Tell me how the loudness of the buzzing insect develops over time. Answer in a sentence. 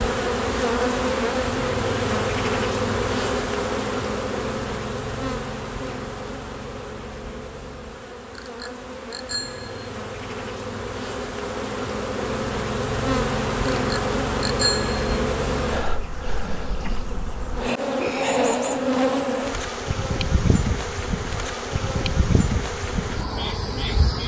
The volume of the buzzing insect goes down, then up.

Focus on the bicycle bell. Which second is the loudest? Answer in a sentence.
The loudest moment of the bicycle bell is at 15 seconds.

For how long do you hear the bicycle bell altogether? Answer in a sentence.
You can hear the bicycle bell for 3 seconds altogether.